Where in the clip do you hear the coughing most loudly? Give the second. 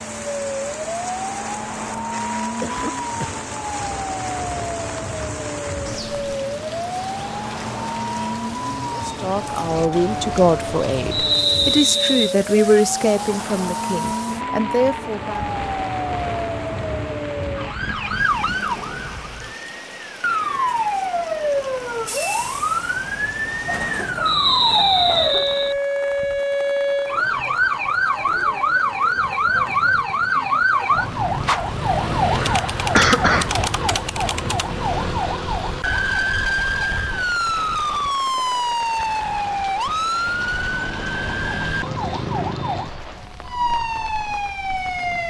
33 s.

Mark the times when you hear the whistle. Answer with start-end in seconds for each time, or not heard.
11.1-12.3, 24.2-25.8.